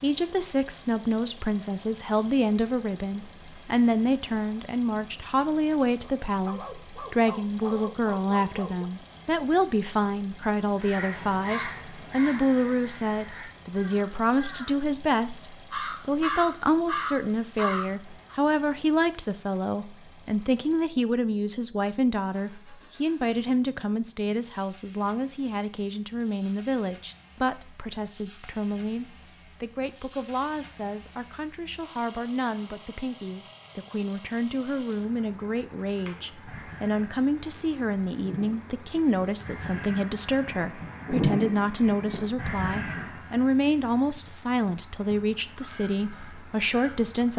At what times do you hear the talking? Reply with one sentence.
The talking can be heard from 0.0 to 47.3 s.